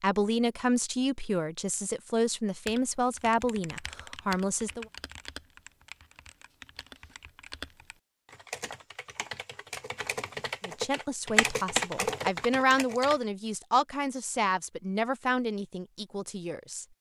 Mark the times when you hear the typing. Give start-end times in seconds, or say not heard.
2.6-13.2.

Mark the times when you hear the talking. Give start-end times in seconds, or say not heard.
0.0-4.8, 10.7-16.9.